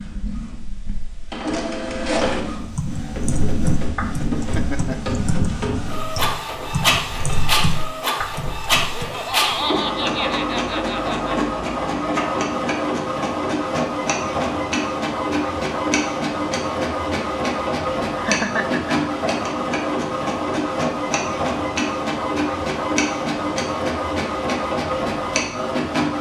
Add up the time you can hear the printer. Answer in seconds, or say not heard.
26 s.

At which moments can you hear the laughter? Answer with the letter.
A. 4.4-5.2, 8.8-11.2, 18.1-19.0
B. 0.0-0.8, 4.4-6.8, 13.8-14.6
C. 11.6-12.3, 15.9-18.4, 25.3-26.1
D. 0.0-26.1
A.